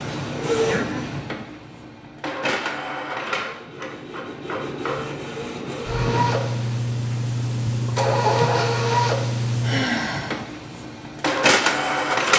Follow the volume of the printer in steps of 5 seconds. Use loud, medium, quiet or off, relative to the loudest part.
medium, loud, loud.